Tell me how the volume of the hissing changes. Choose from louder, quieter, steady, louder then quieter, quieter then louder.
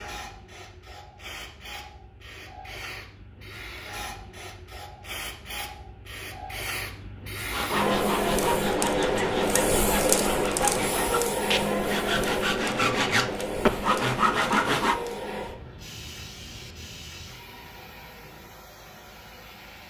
louder then quieter.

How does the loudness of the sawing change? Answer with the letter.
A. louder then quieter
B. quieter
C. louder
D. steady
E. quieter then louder
C.